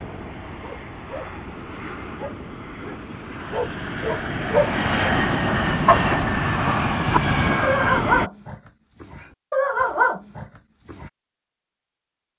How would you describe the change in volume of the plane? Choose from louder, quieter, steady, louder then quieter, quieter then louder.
louder.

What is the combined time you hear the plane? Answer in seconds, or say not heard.
8 s.